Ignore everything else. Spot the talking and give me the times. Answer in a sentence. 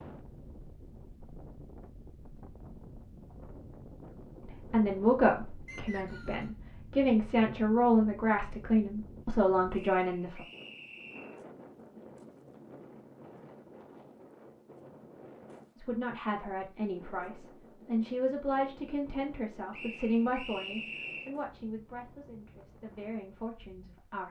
The talking can be heard from 4.4 to 10.4 s and from 15.8 to 24.2 s.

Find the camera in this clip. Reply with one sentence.
You can't hear the camera here.